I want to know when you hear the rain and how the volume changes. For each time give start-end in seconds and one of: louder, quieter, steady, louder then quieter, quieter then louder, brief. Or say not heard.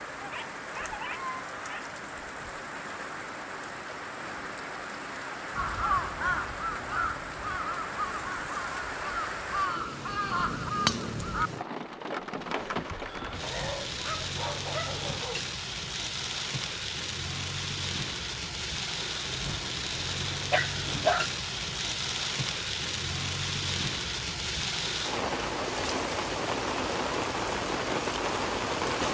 0.0-29.0 louder.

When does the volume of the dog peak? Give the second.
21 s.